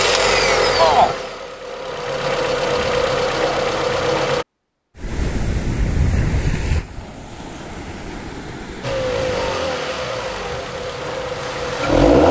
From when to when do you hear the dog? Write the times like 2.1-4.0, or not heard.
not heard.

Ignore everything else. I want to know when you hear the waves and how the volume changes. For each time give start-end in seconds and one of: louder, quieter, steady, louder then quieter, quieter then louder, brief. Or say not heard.
5.0-12.2 quieter.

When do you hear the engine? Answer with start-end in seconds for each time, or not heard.
0.0-4.5, 8.8-12.2.